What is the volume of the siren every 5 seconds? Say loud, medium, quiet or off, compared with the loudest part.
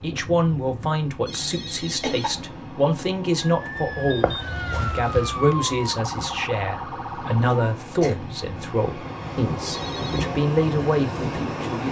loud, loud, off.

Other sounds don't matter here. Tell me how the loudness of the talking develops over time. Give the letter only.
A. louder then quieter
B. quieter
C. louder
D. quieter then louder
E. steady
E.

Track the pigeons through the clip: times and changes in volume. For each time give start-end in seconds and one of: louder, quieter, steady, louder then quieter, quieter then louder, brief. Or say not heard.
not heard.